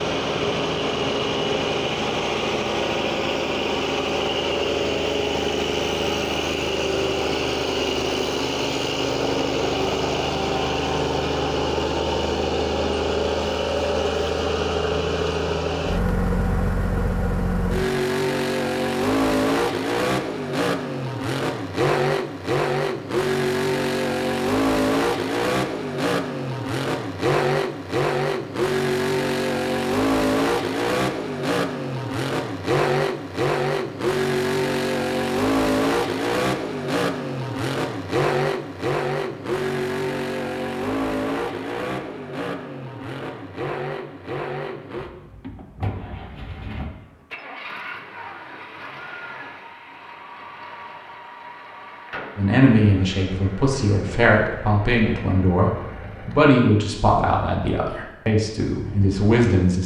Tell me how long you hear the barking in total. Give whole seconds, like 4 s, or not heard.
not heard.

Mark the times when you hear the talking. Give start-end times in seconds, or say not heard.
52.4-59.8.